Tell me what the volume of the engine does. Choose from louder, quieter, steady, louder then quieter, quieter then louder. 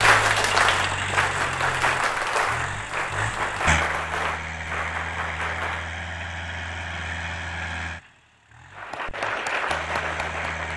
quieter.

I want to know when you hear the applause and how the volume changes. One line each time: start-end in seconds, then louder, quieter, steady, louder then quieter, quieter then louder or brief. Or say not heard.
0.0-6.0 quieter
8.7-10.7 brief.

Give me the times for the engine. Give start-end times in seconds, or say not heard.
0.0-10.7.